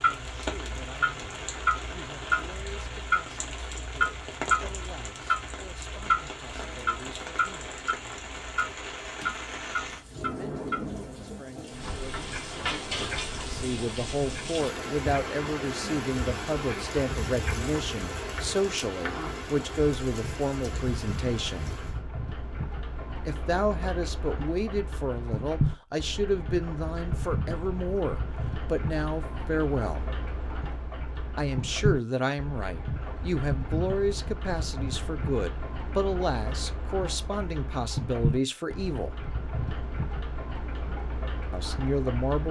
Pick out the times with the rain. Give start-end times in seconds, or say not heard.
0.0-22.0.